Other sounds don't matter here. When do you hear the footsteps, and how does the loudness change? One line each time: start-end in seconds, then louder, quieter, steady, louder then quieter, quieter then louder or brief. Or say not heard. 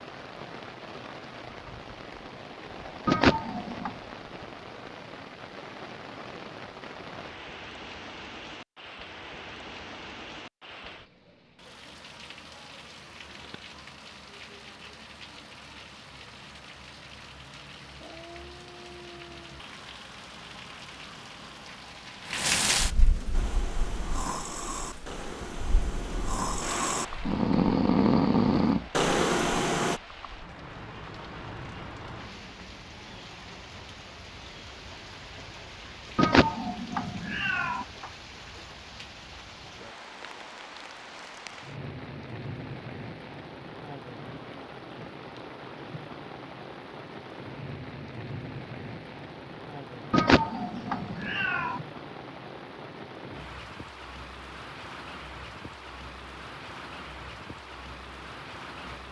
not heard.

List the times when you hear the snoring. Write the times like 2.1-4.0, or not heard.
23.3-30.0.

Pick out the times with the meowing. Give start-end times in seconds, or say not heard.
3.0-4.0, 36.1-37.9, 50.1-51.8.